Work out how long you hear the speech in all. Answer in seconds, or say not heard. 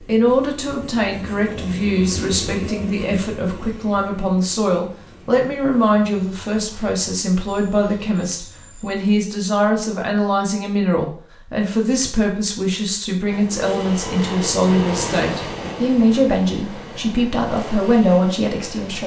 19 s.